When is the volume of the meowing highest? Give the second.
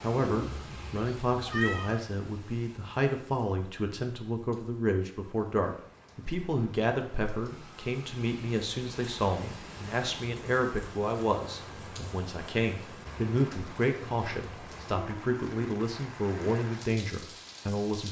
2 s.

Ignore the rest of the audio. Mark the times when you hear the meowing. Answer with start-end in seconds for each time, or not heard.
0.2-2.0.